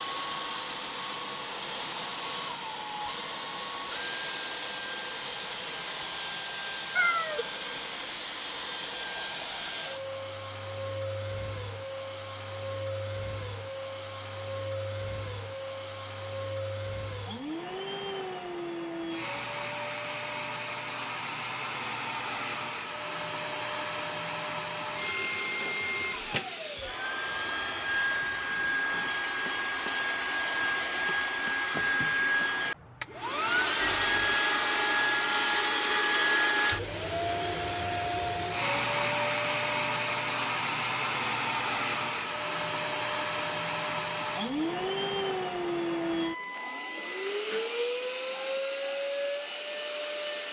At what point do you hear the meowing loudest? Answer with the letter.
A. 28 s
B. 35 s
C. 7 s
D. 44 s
C.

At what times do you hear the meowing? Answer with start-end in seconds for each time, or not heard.
7.0-7.5, 27.2-28.6, 33.8-34.4.